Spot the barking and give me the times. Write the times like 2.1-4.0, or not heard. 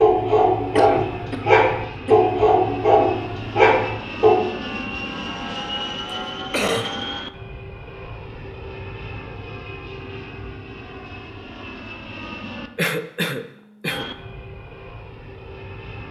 0.0-4.5.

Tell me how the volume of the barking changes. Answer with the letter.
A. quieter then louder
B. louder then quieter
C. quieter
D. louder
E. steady
E.